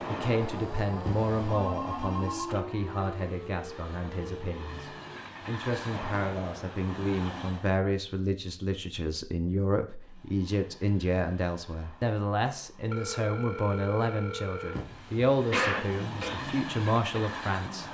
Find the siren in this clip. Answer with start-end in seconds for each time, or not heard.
0.0-5.2.